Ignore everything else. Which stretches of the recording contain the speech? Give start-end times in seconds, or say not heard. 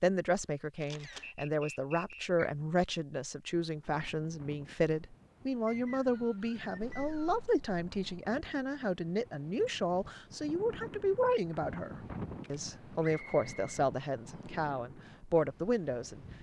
0.0-16.2.